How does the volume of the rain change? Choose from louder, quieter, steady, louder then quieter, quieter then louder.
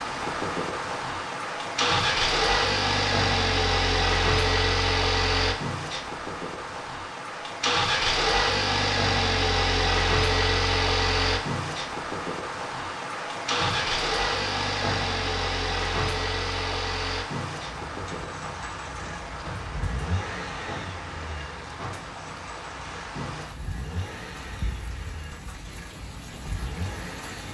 quieter.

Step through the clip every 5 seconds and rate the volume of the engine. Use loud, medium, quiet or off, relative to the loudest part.
loud, loud, loud, medium, quiet, quiet.